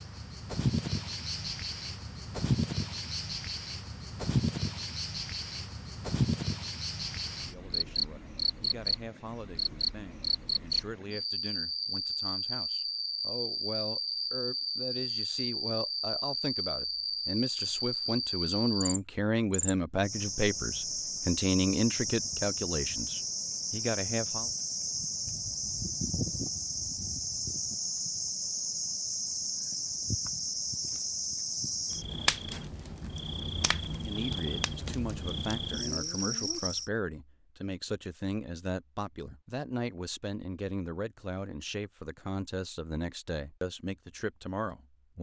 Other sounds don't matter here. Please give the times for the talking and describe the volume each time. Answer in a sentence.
The talking can be heard from 7.5 to 24.5 s, getting louder; and from 34.0 to 45.1 s, at a steady volume.